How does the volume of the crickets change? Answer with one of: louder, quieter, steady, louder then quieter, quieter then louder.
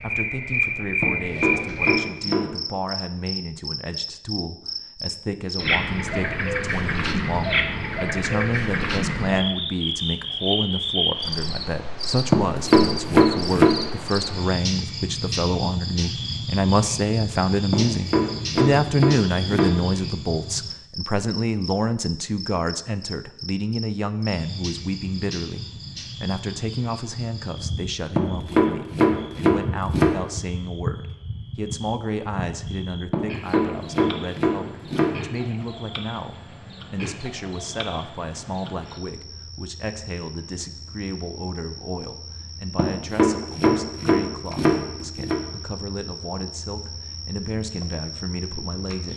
quieter.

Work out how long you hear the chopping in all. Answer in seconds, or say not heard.
12 s.